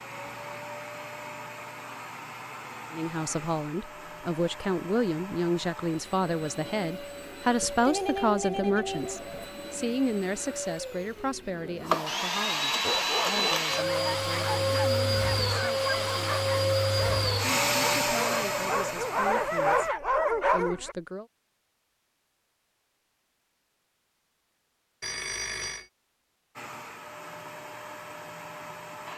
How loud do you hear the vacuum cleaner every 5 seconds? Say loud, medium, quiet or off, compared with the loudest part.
quiet, quiet, loud, loud, off, quiet.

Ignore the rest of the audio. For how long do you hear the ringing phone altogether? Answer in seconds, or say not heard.
3 s.